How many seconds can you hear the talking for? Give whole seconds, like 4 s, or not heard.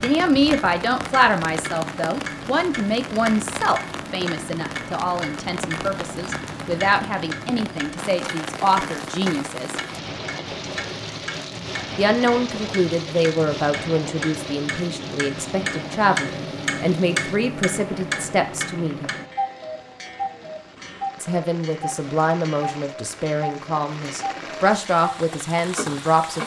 22 s.